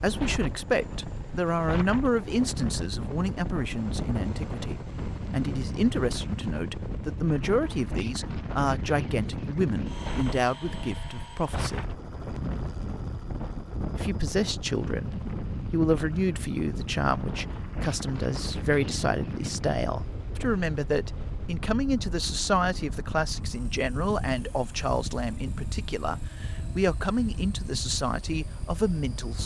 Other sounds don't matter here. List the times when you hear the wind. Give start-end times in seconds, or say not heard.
0.0-29.4.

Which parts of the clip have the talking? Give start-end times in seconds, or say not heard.
0.0-11.9, 13.9-29.4.